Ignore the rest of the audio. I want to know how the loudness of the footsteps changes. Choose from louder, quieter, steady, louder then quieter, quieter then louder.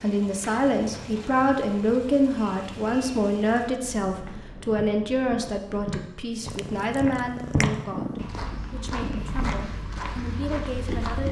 louder then quieter.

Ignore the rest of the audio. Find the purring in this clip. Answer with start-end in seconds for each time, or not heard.
6.3-9.3.